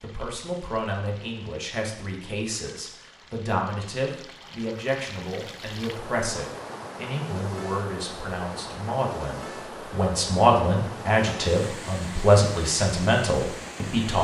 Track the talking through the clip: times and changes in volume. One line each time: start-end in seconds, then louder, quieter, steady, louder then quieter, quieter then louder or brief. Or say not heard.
0.0-14.1 louder.